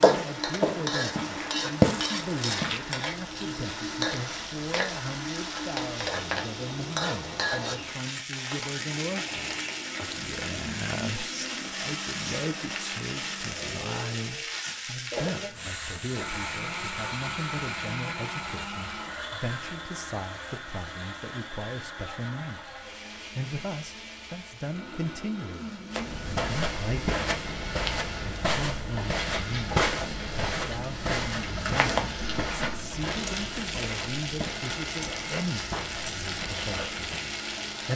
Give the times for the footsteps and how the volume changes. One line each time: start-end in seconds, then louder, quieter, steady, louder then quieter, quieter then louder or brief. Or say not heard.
0.0-2.8 brief
25.9-37.2 quieter.